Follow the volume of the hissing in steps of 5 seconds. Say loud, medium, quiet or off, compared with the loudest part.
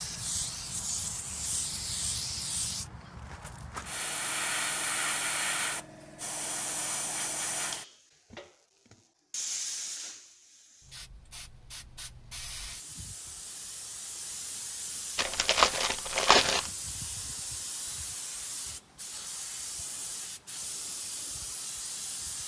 loud, loud, medium, medium, medium.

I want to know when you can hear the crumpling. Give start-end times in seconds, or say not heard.
15.2-16.7.